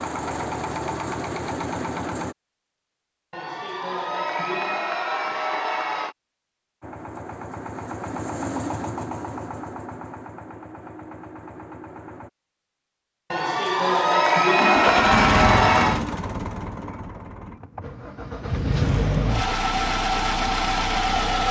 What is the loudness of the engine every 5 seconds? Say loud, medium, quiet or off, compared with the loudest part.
medium, medium, medium, loud, loud.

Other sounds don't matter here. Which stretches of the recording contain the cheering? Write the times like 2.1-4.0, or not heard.
3.3-6.2, 13.3-16.0.